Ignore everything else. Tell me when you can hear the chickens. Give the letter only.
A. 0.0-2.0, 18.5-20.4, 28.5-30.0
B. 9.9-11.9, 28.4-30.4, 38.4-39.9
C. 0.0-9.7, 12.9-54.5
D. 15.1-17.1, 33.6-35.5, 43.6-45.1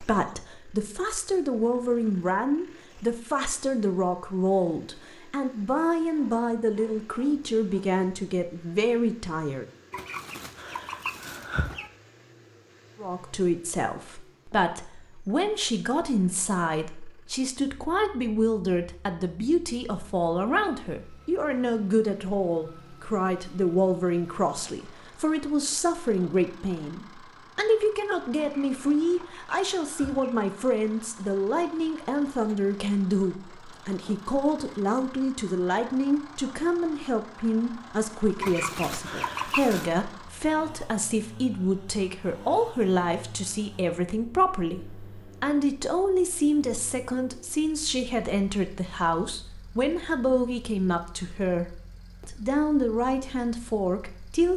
B.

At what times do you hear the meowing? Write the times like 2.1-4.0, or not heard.
not heard.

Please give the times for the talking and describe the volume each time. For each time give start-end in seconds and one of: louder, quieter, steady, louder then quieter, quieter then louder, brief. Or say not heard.
0.0-9.7 steady
12.9-54.5 steady.